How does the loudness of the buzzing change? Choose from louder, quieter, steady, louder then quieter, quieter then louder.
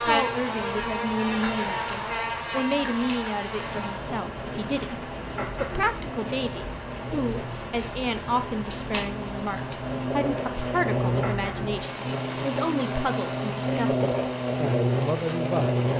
quieter then louder.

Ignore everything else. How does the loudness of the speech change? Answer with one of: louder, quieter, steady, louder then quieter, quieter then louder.
steady.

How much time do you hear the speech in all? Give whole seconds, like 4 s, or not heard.
16 s.